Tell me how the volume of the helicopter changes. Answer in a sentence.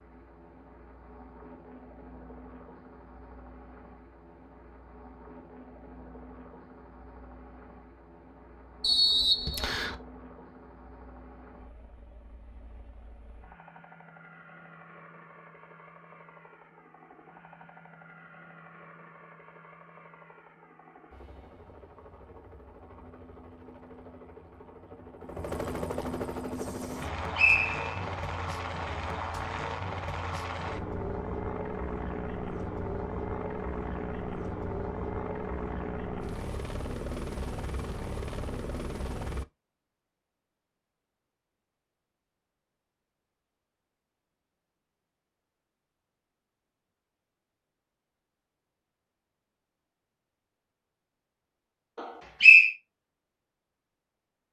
The loudness of the helicopter goes up.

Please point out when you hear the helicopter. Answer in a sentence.
The helicopter can be heard from 0.0 to 39.5 s.